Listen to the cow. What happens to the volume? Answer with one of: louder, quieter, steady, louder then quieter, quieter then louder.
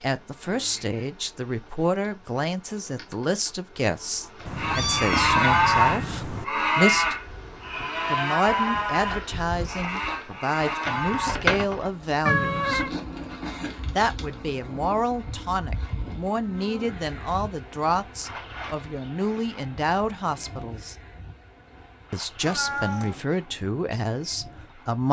quieter.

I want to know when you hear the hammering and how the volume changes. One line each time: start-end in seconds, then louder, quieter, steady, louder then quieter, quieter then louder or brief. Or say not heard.
not heard.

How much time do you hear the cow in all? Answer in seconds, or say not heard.
7 s.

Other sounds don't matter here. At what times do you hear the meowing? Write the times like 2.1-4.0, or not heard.
4.5-6.5, 12.2-12.9, 22.4-23.2.